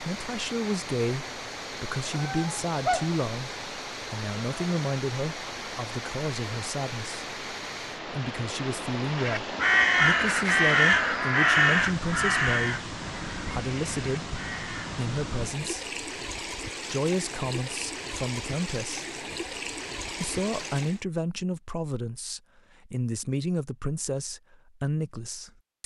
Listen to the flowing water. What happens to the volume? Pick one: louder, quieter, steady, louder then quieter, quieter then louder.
steady.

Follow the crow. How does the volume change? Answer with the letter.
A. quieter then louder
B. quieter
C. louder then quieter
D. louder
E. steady
B.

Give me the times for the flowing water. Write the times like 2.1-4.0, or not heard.
0.0-21.1.